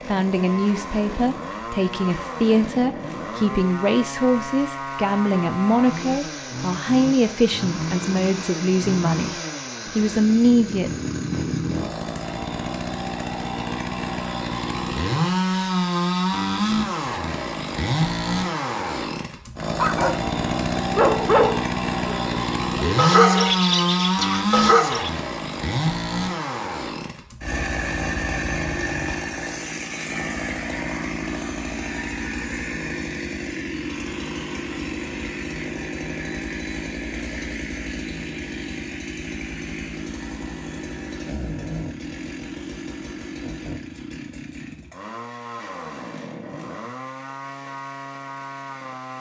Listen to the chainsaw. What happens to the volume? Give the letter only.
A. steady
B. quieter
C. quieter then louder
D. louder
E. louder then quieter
E.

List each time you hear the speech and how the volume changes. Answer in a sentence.
You can hear the speech from 0.1 to 10.9 s, at a steady volume.